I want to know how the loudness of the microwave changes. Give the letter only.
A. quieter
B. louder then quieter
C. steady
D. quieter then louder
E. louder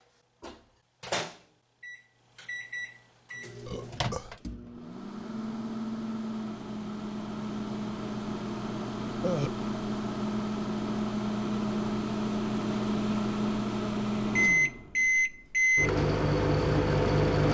E.